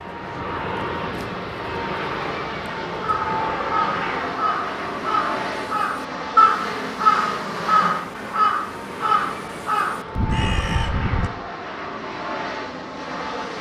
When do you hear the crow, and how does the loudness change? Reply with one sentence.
You can hear the crow from 3.0 to 11.3 s, getting louder then quieter.